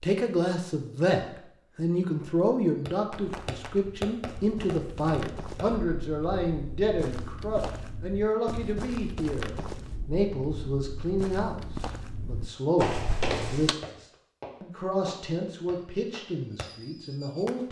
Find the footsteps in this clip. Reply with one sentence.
The footsteps can be heard from 3.1 to 13.8 s.